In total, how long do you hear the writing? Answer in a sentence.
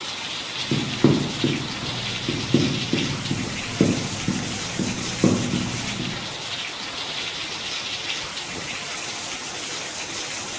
The writing can be heard for 6 seconds in total.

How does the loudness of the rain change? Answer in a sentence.
The loudness of the rain stays about the same.